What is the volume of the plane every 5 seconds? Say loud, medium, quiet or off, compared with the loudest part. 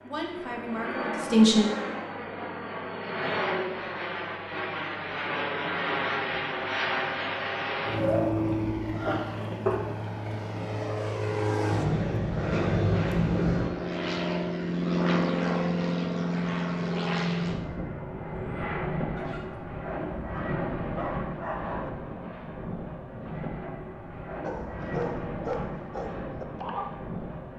medium, loud, loud, loud, medium, medium.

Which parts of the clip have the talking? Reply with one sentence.
You can hear the talking from 0.0 to 1.7 s.